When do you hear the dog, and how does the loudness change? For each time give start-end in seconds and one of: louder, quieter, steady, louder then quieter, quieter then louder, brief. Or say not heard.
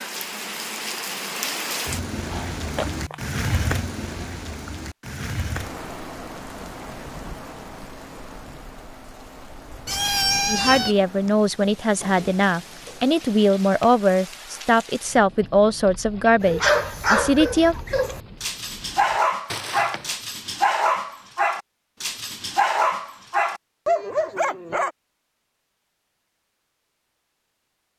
16.4-24.9 steady.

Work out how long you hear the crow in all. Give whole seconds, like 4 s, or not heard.
not heard.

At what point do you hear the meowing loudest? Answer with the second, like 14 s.
10 s.